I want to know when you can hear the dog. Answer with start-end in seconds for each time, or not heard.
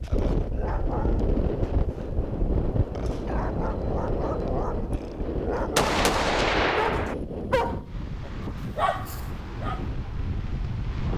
0.0-9.8.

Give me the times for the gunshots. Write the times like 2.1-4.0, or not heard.
5.8-7.2.